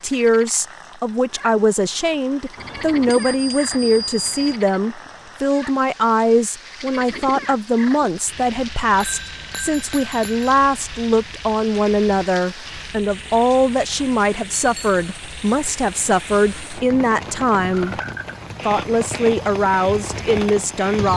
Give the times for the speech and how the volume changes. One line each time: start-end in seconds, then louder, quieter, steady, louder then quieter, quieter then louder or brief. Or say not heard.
0.0-17.9 steady
18.6-21.1 brief.